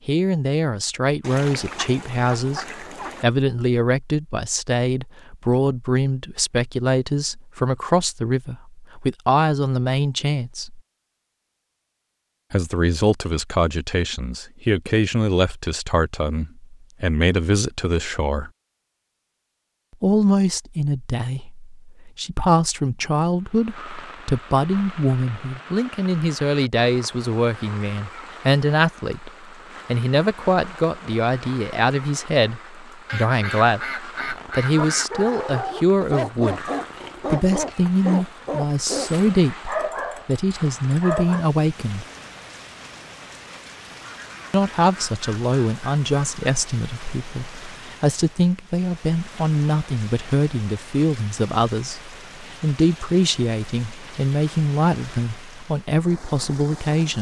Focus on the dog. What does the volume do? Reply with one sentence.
The loudness of the dog stays about the same.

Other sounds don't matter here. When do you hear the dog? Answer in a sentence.
You can hear the dog from 34.2 to 41.5 s.